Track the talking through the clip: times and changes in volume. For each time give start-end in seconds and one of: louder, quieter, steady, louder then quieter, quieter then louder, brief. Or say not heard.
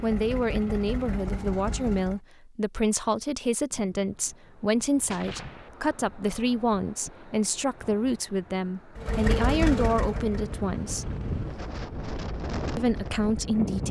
0.0-11.1 steady
12.8-13.8 brief.